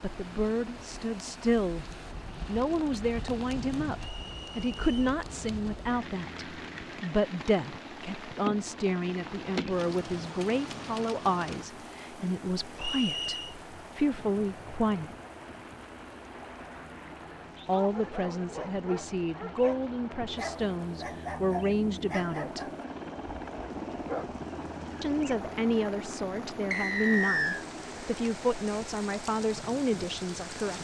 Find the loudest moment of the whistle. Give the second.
27 s.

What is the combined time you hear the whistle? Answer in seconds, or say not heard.
3 s.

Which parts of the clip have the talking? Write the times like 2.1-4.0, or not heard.
0.0-1.9, 2.5-15.2, 17.6-22.6, 25.0-30.7.